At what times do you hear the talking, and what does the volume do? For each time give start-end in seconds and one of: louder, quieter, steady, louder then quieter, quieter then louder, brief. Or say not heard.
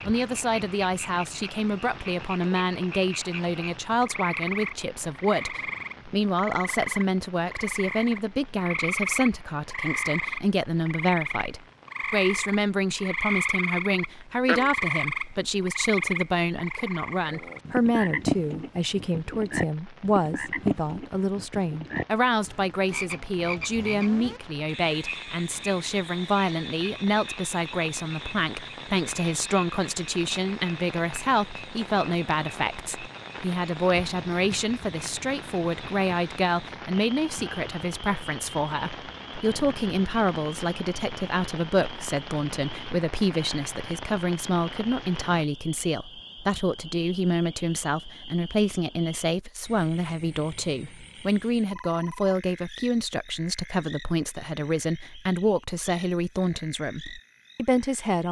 0.1-58.2 steady.